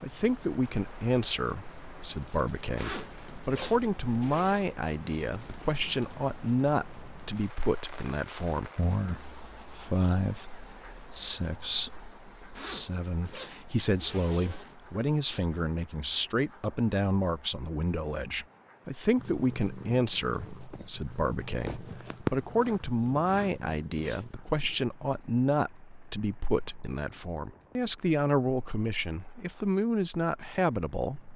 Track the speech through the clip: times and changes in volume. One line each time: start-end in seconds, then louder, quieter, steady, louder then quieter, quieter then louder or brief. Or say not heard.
0.0-31.3 steady.